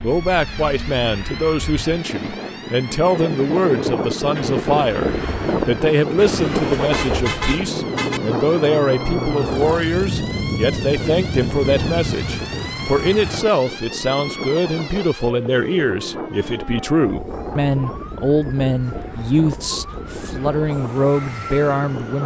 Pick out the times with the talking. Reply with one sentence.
The talking can be heard from 0.0 to 22.2 s.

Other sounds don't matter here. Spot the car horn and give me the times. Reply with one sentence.
The car horn can be heard from 6.2 to 8.2 s.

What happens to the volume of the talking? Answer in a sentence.
The loudness of the talking stays about the same.